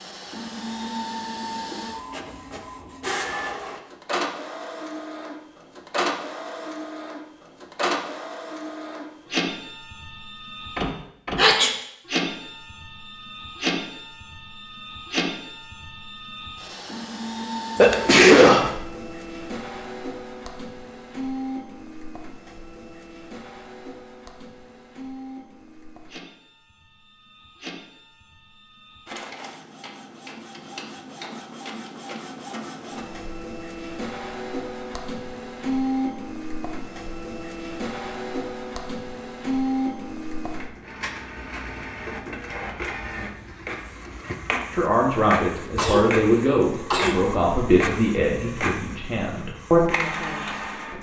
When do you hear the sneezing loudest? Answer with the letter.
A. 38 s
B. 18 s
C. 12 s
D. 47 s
B.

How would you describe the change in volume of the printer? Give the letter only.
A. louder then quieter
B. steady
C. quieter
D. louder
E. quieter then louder
E.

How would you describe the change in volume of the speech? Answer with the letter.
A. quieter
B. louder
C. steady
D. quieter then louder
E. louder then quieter
D.